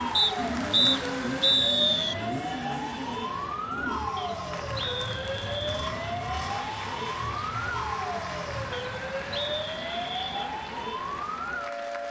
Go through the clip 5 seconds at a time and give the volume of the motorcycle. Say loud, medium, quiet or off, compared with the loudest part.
loud, loud, off.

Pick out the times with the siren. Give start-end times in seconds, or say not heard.
0.0-12.0.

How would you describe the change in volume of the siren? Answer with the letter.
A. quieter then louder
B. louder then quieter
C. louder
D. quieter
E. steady
E.